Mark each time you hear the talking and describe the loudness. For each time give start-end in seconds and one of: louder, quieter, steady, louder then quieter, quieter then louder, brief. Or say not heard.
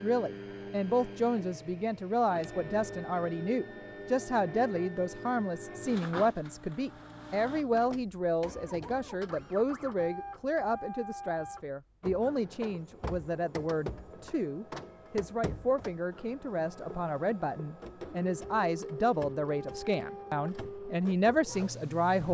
0.0-22.2 steady.